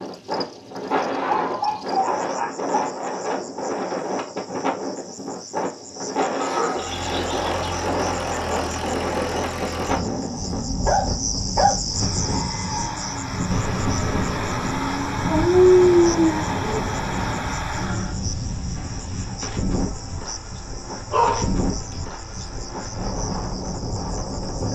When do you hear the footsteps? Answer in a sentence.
The footsteps can't be heard in this clip.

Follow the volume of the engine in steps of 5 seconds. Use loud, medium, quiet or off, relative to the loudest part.
off, loud, loud, loud, off.